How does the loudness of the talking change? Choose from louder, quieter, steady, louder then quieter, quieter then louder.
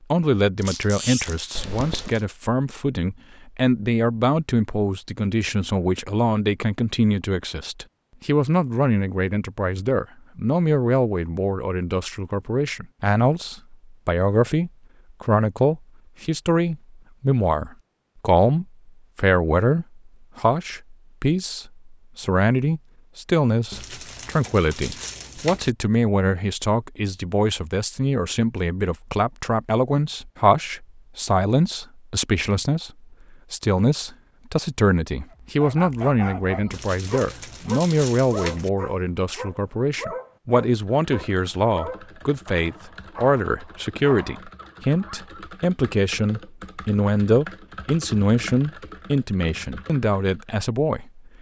steady.